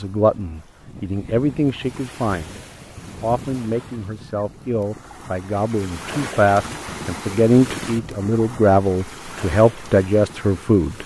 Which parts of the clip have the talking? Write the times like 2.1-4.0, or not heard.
0.0-11.0.